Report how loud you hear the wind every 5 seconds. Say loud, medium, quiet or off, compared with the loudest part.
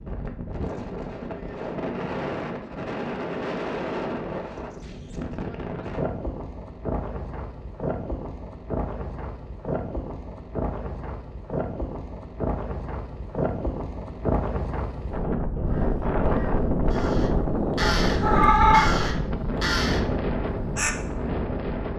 medium, medium, medium, loud, loud.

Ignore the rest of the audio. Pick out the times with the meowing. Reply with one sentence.
The meowing can be heard from 17.8 to 18.9 s.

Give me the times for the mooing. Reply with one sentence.
You can't hear the mooing here.